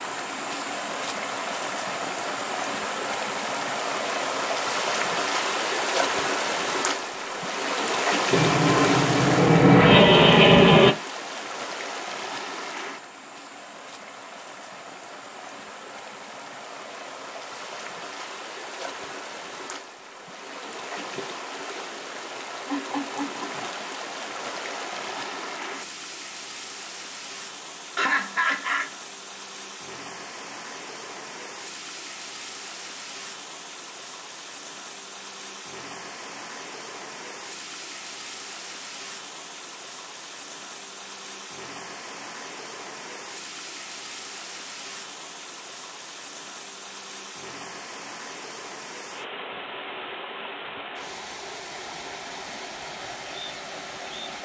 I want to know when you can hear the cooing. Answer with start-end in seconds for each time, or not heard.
not heard.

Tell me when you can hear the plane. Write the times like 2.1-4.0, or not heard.
8.3-10.9.